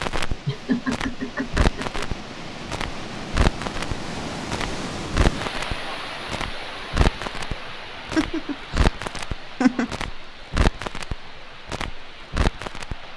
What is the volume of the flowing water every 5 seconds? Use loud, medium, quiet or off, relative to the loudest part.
loud, loud, medium.